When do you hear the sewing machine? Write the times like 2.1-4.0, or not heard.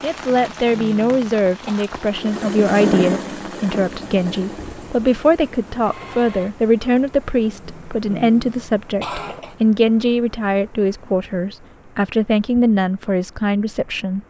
1.9-6.5.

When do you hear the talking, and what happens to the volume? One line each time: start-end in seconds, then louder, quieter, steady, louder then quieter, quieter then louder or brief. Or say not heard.
0.0-14.2 steady.